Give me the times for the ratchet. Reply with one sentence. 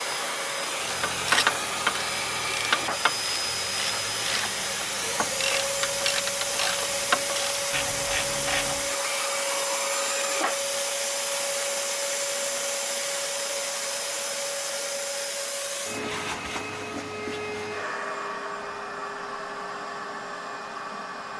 The ratchet can be heard from 0.8 to 8.9 s.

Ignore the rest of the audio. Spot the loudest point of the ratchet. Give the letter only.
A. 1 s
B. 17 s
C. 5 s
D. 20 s
A.